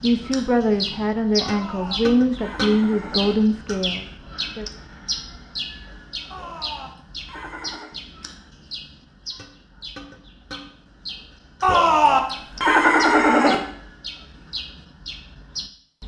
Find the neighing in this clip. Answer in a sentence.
The neighing can be heard from 1.4 to 3.4 s, from 6.3 to 8.0 s and from 11.6 to 13.6 s.